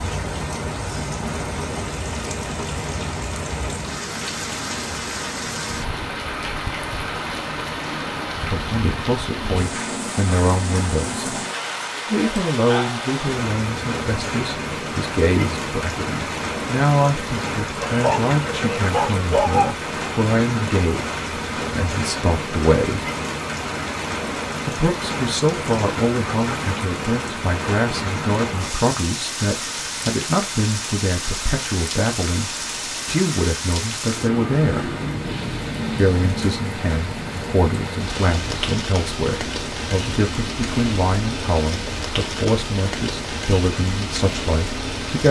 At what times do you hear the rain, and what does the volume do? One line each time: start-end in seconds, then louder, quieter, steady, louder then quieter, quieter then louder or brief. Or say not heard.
0.0-45.2 steady.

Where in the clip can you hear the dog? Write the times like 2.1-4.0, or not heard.
17.8-19.8.